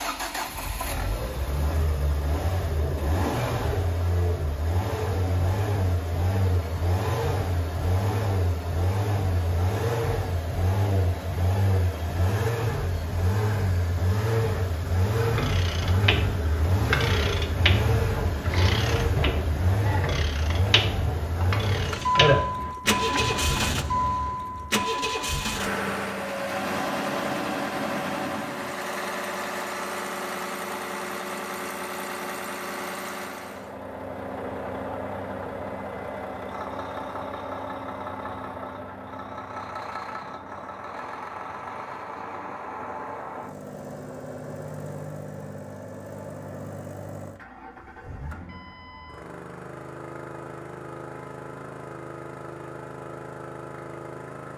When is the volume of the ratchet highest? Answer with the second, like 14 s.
22 s.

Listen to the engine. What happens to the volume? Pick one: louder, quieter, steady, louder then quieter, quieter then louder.
quieter.